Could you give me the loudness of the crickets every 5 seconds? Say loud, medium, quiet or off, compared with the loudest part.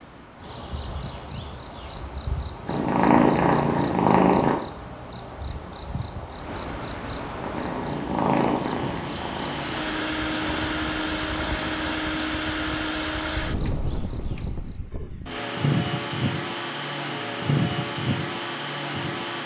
loud, loud, loud, off.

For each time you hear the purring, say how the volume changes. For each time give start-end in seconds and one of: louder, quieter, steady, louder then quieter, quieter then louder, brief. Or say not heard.
2.6-4.5 brief
7.4-12.1 quieter.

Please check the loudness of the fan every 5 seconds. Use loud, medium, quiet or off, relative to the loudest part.
quiet, medium, loud, loud.